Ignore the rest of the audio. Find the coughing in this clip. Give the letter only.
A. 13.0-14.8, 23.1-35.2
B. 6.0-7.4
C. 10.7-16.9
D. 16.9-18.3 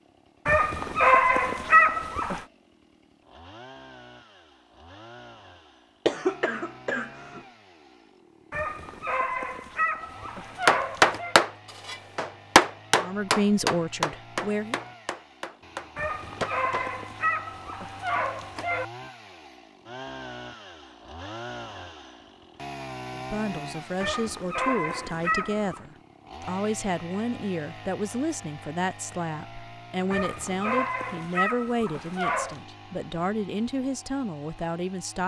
B.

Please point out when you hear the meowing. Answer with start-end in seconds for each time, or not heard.
not heard.